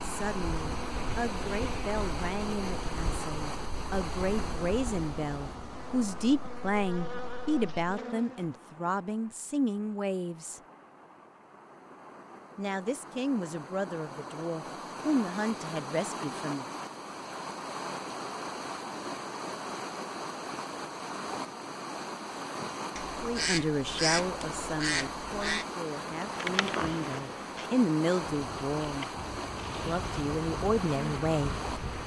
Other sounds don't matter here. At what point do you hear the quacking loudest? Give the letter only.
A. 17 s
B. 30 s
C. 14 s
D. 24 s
D.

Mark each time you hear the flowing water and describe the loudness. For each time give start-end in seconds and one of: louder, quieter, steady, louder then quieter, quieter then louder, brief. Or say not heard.
0.0-32.0 quieter then louder.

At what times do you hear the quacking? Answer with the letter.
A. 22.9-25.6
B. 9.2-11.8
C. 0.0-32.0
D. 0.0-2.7
A.